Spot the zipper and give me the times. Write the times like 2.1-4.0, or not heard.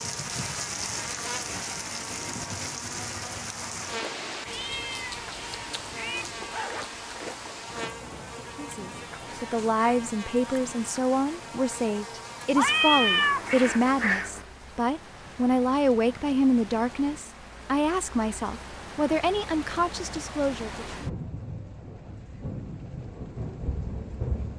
6.2-8.0.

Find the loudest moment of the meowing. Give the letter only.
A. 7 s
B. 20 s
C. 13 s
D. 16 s
C.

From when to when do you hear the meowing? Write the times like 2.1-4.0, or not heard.
4.5-6.2, 12.6-14.4.